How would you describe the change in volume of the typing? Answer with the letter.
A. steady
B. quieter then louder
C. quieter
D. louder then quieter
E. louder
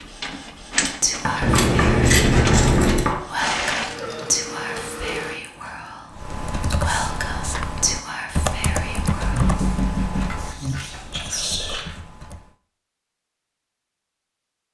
C.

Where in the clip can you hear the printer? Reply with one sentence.
You can hear the printer from 0.0 to 5.4 s.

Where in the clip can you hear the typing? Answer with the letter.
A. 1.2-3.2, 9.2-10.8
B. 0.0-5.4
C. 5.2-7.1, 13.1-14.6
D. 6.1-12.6
D.